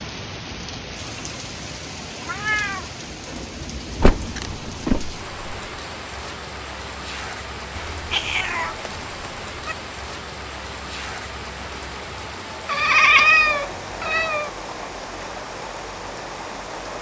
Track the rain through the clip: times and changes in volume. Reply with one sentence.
The rain can be heard from 0.0 to 16.9 s, at a steady volume.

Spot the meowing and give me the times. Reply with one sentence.
The meowing can be heard from 2.2 to 3.5 s, from 7.8 to 9.8 s and from 12.7 to 14.5 s.